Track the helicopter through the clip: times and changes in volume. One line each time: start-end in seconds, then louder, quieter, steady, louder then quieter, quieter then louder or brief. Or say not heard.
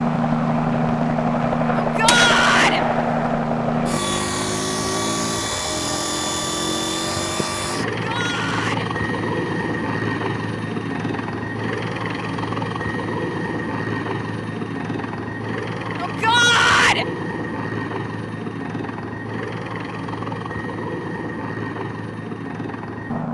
0.0-23.2 quieter.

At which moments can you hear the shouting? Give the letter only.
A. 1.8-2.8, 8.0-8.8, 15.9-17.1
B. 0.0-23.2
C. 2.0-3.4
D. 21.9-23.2
A.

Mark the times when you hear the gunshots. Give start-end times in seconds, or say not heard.
2.0-3.4.